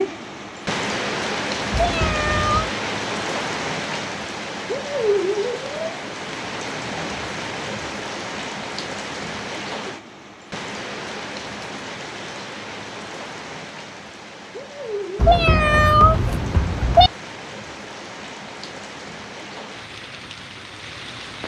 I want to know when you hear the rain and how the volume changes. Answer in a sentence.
The rain can be heard from 0.0 to 21.4 s, getting quieter.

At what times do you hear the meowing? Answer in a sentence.
The meowing can be heard from 1.7 to 2.8 s and from 15.2 to 17.1 s.